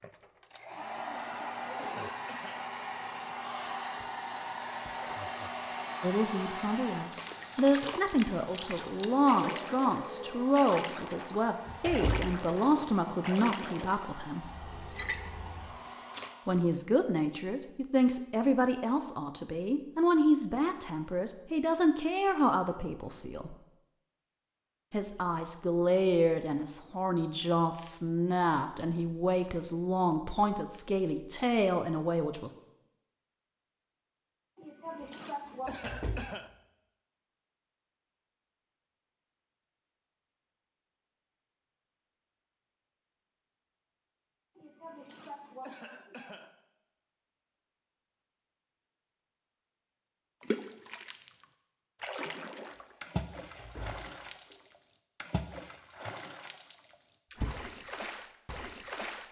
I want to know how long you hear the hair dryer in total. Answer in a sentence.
You can hear the hair dryer for 17 seconds altogether.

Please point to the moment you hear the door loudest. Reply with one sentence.
The loudest moment of the door is at 12 seconds.